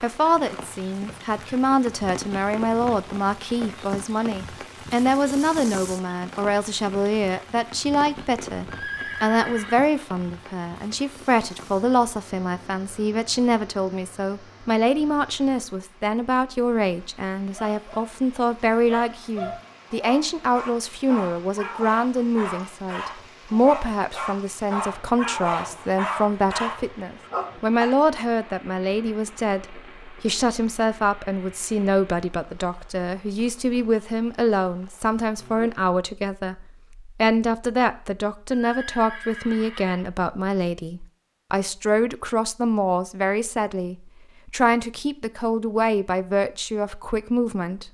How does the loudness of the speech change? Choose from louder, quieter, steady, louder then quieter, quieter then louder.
steady.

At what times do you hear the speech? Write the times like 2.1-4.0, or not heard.
0.0-47.8.